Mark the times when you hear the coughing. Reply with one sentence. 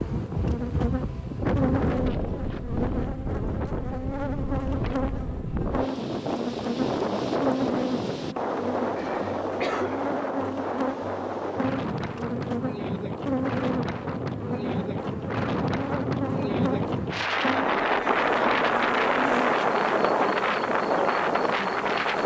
The coughing can be heard from 8.9 to 10.0 s.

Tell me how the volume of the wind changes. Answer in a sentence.
The volume of the wind goes up.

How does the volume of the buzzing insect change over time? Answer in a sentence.
The loudness of the buzzing insect stays about the same.